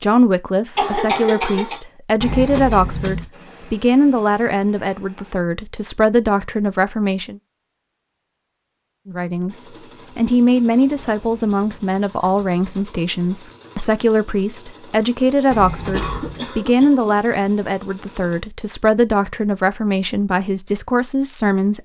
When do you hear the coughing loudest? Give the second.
1 s.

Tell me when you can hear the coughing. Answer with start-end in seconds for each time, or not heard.
0.8-1.8, 15.9-17.1.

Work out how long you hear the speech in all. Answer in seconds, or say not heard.
20 s.